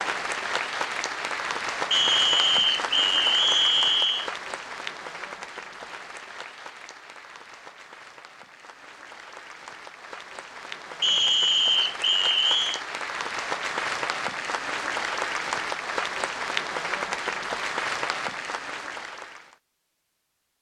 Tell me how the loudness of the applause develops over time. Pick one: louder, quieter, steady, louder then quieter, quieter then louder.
quieter then louder.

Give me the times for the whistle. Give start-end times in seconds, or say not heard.
1.9-4.3, 11.0-12.8.